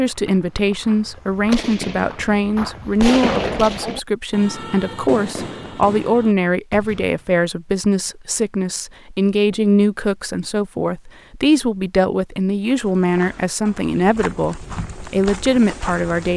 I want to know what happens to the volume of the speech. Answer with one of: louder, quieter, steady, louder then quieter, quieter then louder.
steady.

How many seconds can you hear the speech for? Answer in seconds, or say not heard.
16 s.